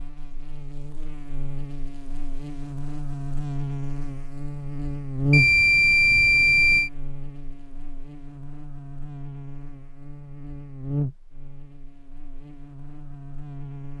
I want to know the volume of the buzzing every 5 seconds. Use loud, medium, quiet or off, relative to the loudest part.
medium, loud, medium.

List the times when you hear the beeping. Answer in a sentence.
The beeping can be heard from 5.3 to 6.9 s.